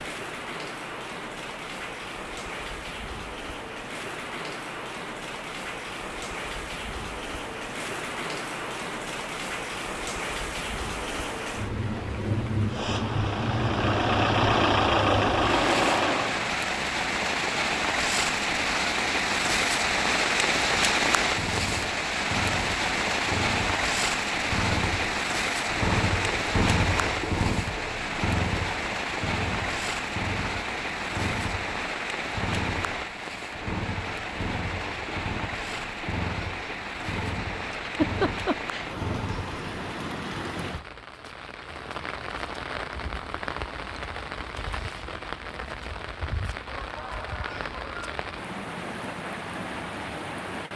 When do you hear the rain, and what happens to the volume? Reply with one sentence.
You can hear the rain from 0.0 to 50.7 s, getting louder then quieter.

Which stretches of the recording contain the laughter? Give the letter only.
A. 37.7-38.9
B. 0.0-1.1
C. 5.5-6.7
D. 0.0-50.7
A.